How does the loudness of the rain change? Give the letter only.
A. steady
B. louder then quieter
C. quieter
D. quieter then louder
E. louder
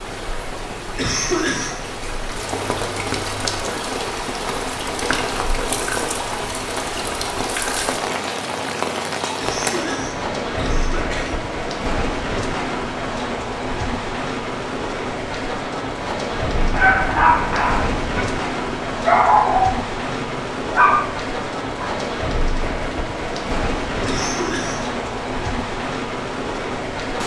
A.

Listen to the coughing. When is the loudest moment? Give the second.
1 s.